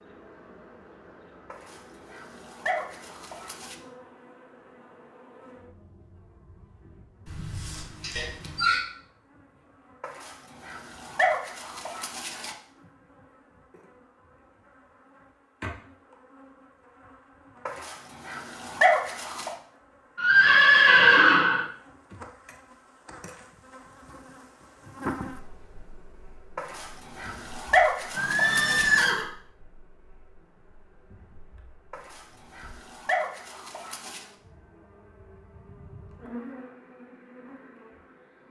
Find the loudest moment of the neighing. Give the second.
21 s.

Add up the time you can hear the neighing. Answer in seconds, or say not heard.
4 s.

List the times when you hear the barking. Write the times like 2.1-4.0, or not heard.
1.5-3.8, 10.0-12.6, 17.6-19.5, 26.6-29.1, 31.9-34.2.